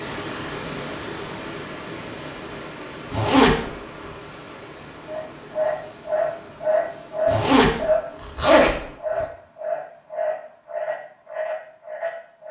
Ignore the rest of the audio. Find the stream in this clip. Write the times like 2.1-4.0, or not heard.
0.0-8.4.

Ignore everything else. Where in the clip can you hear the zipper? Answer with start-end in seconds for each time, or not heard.
3.1-3.7, 7.2-9.2.